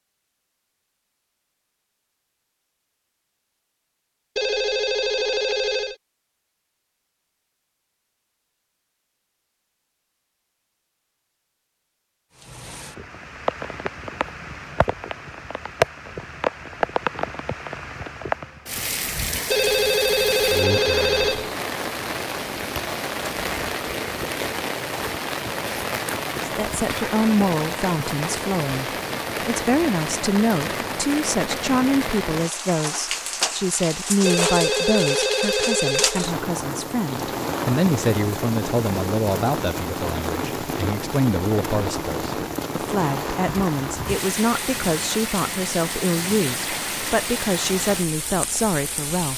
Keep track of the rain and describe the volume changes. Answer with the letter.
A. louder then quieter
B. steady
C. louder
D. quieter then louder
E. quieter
B.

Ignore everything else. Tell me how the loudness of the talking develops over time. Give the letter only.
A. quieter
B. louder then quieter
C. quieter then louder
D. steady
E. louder
D.